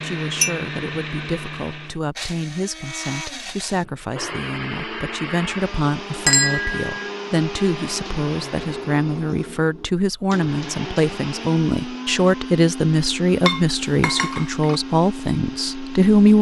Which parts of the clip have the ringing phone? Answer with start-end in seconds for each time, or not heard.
not heard.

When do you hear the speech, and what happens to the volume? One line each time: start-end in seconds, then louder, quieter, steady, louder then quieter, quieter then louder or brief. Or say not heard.
0.0-16.3 louder.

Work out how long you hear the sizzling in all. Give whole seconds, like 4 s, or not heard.
not heard.